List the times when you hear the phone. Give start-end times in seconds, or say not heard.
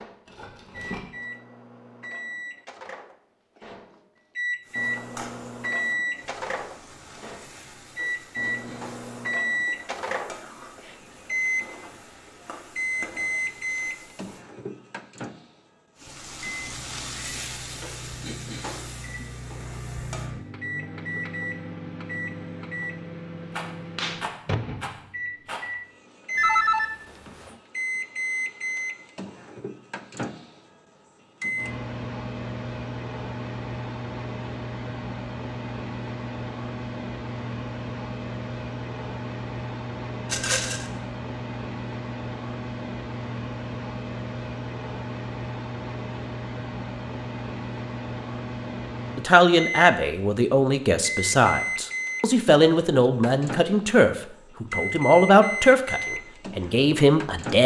26.4-27.6.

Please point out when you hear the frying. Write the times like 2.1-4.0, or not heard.
4.6-14.4, 15.9-20.4.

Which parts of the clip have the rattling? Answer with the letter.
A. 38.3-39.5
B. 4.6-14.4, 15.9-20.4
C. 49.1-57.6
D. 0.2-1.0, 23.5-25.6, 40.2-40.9
D.